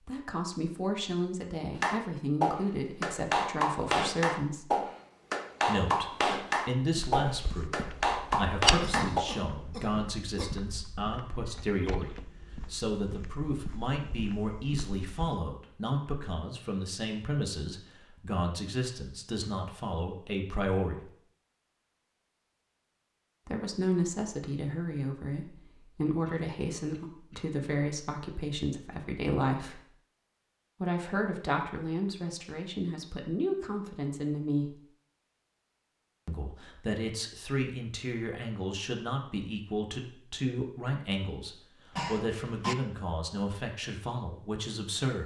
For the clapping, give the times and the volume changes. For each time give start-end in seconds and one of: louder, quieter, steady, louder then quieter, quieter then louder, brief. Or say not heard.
1.8-9.2 steady.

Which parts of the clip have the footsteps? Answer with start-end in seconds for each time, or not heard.
6.8-15.4.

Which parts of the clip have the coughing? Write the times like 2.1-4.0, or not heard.
8.8-10.6, 26.2-27.4, 41.9-42.8.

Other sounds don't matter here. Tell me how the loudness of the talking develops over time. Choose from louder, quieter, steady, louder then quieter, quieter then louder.
steady.